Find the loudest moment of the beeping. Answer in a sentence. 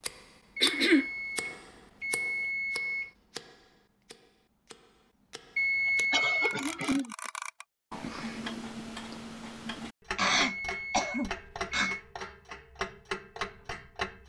The loudest moment of the beeping is at 6 seconds.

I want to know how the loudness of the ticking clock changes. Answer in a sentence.
The volume of the ticking clock goes down, then up.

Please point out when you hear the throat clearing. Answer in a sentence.
The throat clearing can be heard from 0.6 to 1.1 s, from 6.1 to 7.2 s and from 10.2 to 11.9 s.